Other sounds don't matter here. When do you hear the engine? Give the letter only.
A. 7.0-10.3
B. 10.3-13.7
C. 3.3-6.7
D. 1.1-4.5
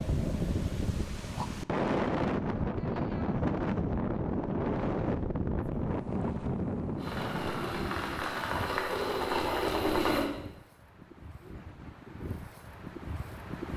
A.